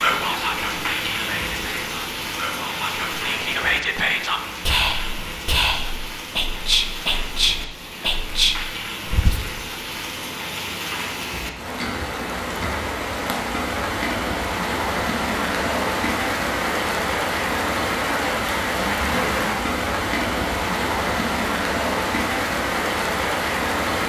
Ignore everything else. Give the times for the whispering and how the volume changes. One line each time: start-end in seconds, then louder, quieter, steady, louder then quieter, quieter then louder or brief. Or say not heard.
0.0-9.4 louder.